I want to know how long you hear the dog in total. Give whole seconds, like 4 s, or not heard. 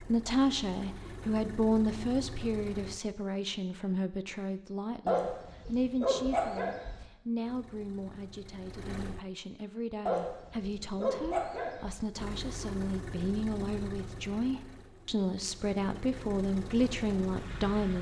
4 s.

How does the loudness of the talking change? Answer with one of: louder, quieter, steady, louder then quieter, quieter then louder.
quieter then louder.